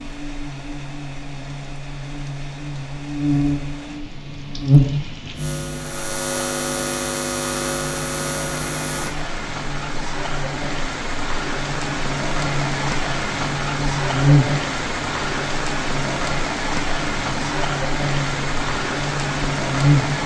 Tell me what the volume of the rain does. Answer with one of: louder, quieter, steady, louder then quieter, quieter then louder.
louder.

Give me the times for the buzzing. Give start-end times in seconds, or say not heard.
0.0-20.2.